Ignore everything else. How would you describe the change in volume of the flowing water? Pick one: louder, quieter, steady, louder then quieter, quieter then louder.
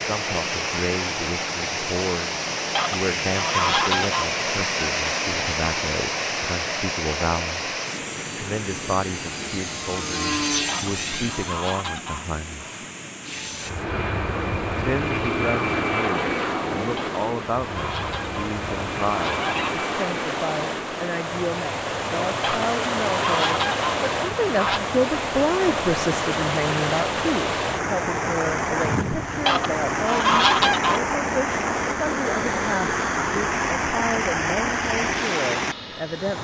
quieter then louder.